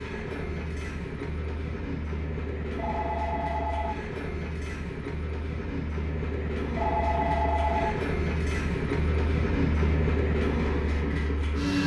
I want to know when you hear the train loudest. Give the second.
10 s.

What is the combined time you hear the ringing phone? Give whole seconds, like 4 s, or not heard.
2 s.